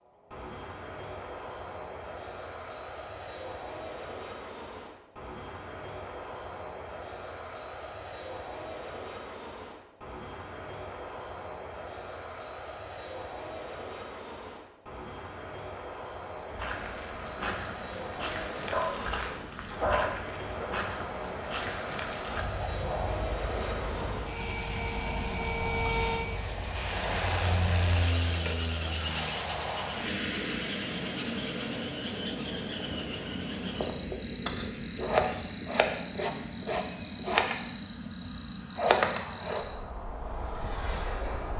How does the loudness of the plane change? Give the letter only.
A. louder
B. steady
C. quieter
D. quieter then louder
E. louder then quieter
E.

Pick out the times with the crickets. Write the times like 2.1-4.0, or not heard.
16.3-41.5.